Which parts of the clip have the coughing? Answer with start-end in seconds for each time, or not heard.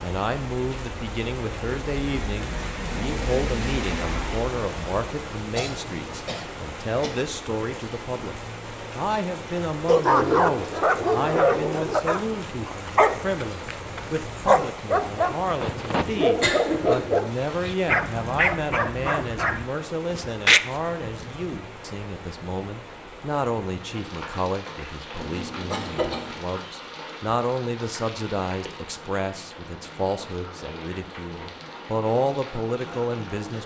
5.5-7.2, 16.4-17.1, 25.2-26.4.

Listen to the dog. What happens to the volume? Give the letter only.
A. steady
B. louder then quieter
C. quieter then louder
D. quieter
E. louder
A.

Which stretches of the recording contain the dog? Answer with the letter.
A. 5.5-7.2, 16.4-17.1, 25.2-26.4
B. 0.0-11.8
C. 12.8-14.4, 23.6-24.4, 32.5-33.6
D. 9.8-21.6
D.